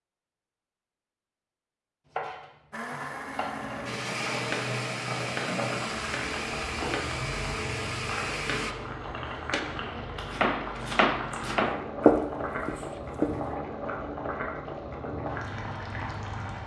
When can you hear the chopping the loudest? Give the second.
12 s.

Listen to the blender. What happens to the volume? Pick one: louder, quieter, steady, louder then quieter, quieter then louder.
steady.